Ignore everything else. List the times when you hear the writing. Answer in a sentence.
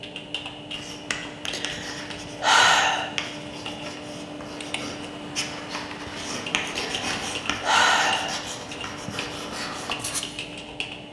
You can hear the writing from 0.7 to 10.2 s.